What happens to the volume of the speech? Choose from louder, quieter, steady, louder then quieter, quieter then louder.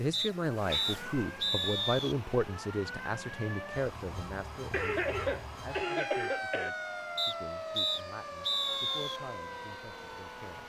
quieter.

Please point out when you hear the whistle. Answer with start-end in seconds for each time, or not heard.
0.1-2.1, 7.2-9.2.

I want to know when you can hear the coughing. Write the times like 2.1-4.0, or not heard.
4.7-6.7.